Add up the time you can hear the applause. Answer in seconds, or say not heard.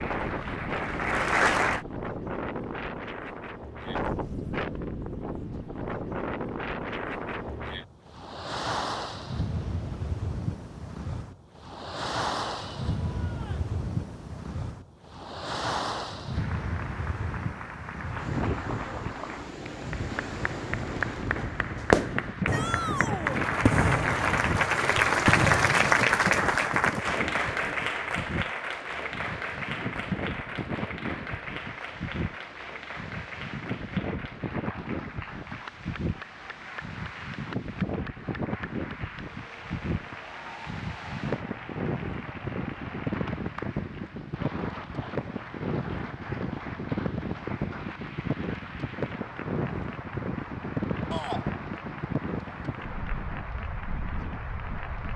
41 s.